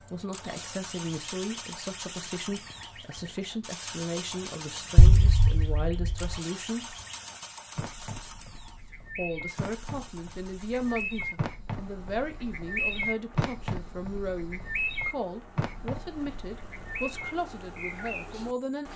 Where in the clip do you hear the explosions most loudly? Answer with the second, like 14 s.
5 s.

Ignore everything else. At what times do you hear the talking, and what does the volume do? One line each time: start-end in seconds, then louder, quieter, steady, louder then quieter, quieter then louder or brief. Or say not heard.
0.1-7.0 steady
9.2-18.9 steady.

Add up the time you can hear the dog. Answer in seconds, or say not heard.
not heard.